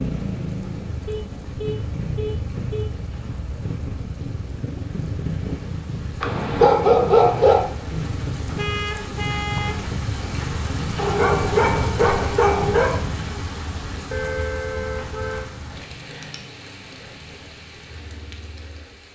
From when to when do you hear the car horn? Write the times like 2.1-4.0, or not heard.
1.1-2.9, 8.6-9.8, 14.1-15.5.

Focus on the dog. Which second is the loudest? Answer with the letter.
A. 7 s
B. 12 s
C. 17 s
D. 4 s
A.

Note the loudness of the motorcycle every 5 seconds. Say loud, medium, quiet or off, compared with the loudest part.
loud, loud, loud, quiet.